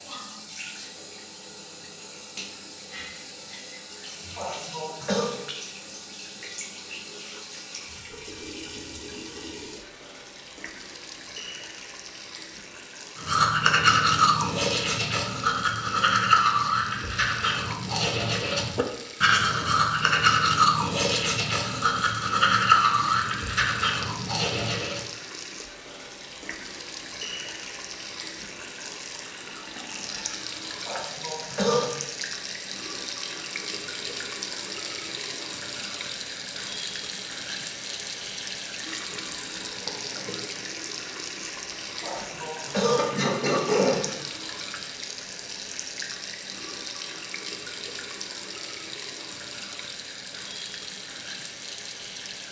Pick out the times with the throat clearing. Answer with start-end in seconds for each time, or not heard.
4.3-5.3, 30.9-31.9, 42.0-44.0.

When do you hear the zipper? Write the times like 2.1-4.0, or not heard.
not heard.